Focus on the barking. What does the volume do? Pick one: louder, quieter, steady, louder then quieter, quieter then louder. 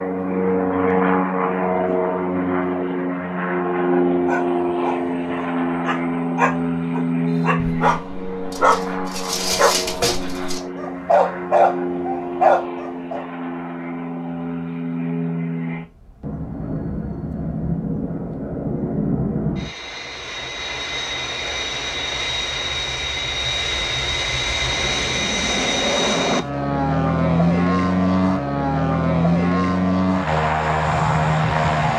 louder.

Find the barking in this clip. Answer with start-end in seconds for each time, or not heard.
4.2-13.2.